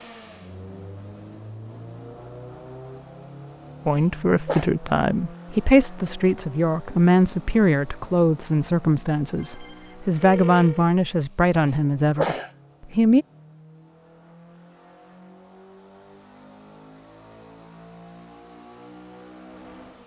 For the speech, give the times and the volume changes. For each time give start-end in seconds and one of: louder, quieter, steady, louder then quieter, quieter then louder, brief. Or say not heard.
3.9-13.2 steady.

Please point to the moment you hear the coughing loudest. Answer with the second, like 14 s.
12 s.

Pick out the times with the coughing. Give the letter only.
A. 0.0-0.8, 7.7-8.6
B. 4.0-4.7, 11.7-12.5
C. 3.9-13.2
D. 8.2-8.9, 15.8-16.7
B.